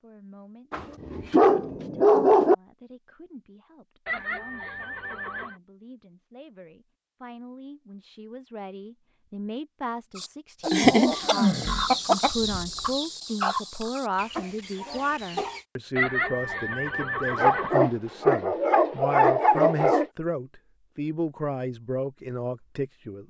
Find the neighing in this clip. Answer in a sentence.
You can hear the neighing from 4.0 to 5.5 s, from 11.1 to 12.9 s and from 15.9 to 17.8 s.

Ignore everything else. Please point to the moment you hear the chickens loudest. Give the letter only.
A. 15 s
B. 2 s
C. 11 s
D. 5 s
C.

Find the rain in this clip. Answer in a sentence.
You can't hear the rain here.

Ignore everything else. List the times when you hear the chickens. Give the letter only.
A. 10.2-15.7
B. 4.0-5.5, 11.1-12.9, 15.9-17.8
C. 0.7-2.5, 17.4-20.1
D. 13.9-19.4
A.